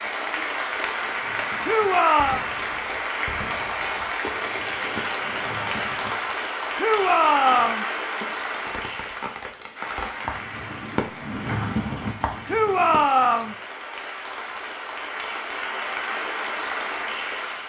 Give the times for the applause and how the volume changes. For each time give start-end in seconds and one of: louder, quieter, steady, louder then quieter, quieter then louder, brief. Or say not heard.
0.0-17.6 quieter then louder.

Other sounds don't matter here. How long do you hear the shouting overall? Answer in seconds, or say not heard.
3 s.